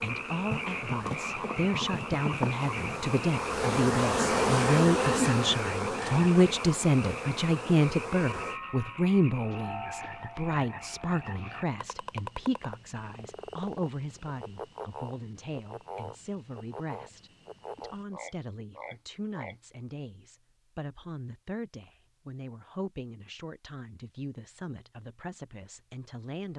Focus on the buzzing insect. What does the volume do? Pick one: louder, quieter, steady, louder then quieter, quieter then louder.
louder then quieter.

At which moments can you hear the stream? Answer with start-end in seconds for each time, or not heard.
not heard.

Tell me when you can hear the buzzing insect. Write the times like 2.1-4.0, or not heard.
0.0-8.6.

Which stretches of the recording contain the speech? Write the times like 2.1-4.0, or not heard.
0.0-26.5.